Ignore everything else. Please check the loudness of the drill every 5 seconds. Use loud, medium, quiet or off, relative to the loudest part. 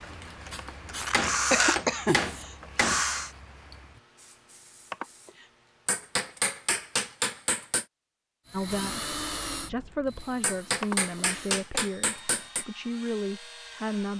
loud, medium, quiet.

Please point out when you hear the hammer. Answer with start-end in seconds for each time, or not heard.
1.1-3.0, 5.8-7.8, 10.4-12.7.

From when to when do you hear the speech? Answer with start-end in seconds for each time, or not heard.
8.5-14.1.